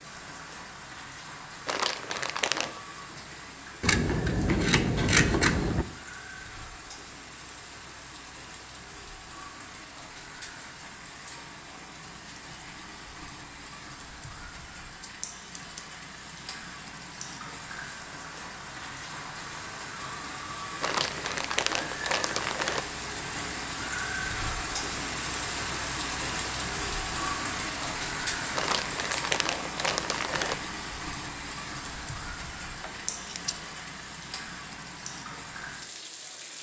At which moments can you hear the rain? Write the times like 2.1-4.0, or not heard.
0.0-36.5.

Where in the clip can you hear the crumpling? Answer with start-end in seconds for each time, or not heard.
1.6-2.8, 20.8-22.9, 28.6-30.6.